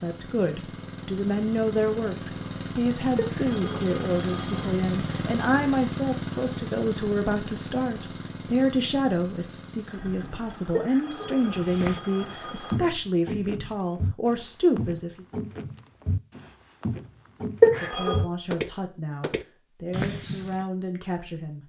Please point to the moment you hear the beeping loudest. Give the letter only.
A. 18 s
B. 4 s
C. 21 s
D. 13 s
A.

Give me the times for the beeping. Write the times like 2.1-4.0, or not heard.
3.1-4.7, 10.7-12.8, 17.6-18.2.